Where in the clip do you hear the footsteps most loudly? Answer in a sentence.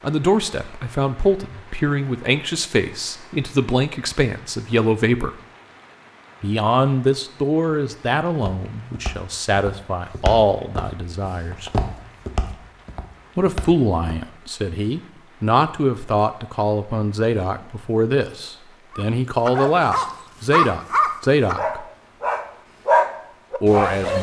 The volume of the footsteps peaks at 12 seconds.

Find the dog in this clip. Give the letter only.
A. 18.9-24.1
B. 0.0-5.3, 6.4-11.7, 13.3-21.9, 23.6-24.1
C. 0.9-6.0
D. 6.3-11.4
A.